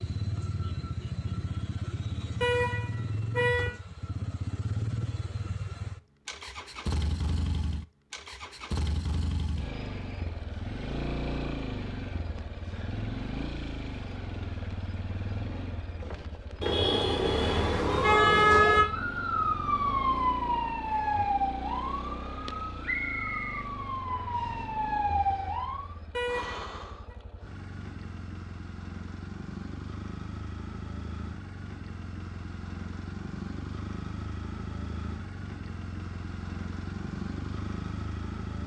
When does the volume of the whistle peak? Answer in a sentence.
The volume of the whistle peaks at 23 seconds.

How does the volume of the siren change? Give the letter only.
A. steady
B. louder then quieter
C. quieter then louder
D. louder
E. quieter
C.